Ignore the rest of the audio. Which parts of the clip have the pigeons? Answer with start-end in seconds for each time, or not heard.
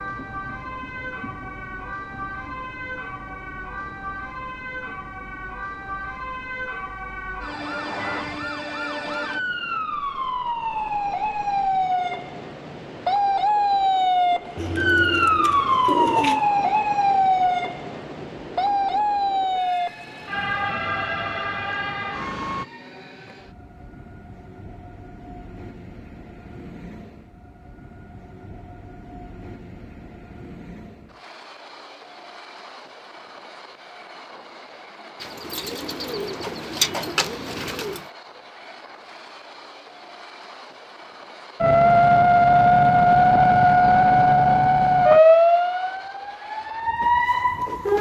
14.6-16.4, 35.2-38.0.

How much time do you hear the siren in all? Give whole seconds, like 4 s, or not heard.
29 s.